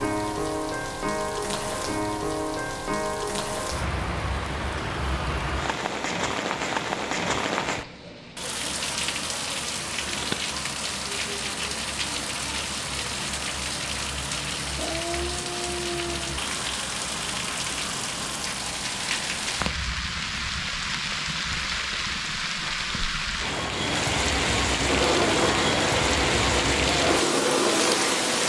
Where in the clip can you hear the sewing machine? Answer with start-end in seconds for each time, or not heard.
24.8-28.4.